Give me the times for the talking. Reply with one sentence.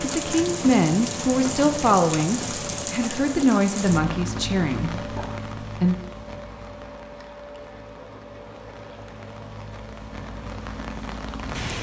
The talking can be heard from 0.0 to 6.0 s.